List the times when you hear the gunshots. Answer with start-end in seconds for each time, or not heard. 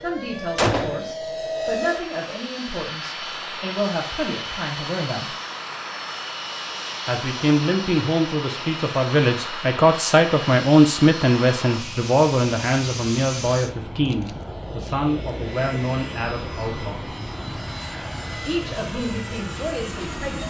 0.6-1.1.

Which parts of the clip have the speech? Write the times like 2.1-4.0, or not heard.
0.0-5.3, 7.0-17.1, 18.4-20.4.